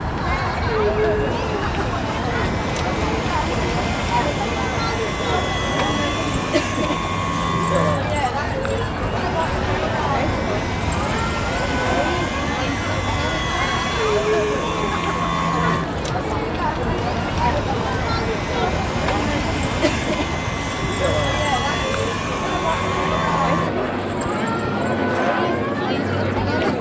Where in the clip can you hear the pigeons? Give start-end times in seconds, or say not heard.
not heard.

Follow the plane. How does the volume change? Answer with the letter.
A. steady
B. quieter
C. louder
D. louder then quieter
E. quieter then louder
A.